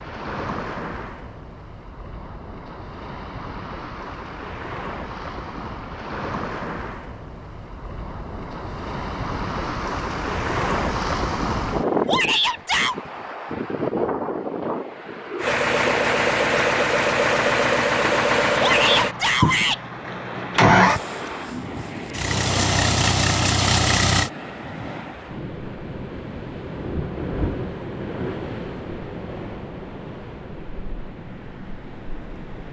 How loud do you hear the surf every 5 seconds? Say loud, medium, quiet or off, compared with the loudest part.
medium, medium, loud, medium, medium, medium, quiet.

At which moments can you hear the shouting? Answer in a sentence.
You can hear the shouting from 12.1 to 12.9 s and from 18.6 to 19.8 s.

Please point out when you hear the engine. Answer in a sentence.
You can hear the engine from 15.4 to 24.3 s.